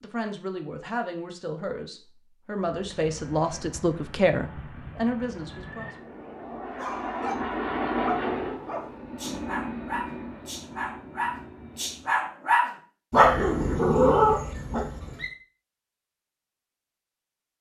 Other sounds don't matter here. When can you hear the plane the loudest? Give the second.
8 s.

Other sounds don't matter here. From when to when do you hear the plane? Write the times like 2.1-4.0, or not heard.
2.7-12.3.